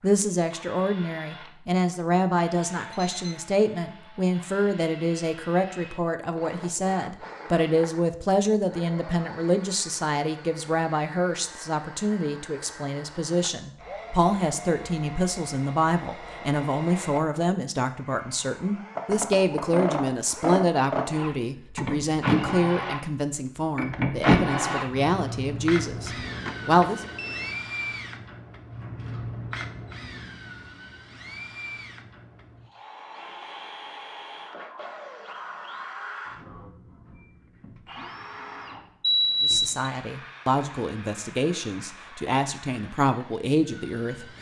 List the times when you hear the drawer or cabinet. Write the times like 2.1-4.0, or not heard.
not heard.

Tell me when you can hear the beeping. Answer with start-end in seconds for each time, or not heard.
2.9-3.5, 26.2-27.6, 39.0-39.9.